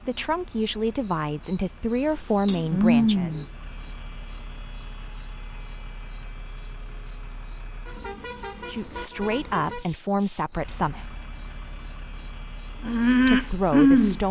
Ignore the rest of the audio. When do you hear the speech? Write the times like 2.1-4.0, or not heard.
0.1-3.3, 8.7-11.2, 13.2-14.2.